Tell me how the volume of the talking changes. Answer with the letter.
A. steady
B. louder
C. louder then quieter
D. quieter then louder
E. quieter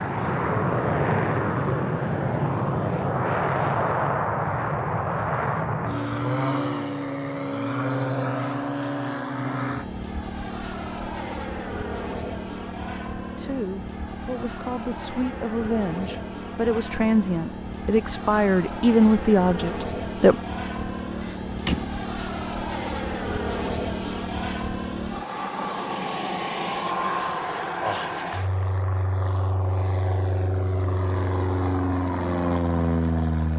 B.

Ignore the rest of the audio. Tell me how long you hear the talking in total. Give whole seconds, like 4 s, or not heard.
7 s.